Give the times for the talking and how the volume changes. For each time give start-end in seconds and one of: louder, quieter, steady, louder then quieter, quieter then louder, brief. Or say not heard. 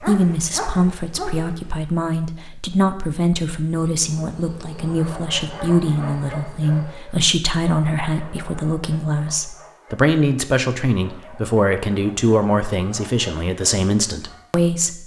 0.0-15.0 steady.